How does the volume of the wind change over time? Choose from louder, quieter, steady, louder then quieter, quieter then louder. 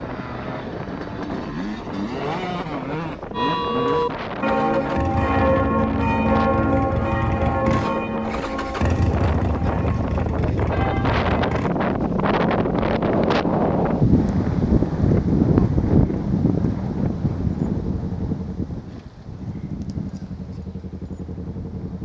louder then quieter.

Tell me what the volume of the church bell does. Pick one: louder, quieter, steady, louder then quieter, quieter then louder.
quieter.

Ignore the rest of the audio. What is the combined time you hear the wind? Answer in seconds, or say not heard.
22 s.